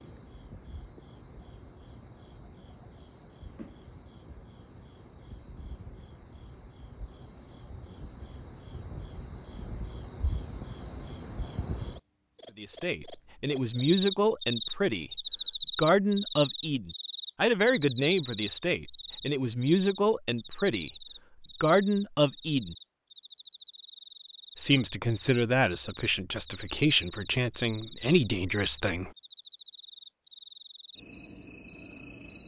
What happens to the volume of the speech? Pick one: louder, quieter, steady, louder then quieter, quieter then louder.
steady.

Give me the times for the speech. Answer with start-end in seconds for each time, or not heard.
12.6-22.8, 24.6-29.1.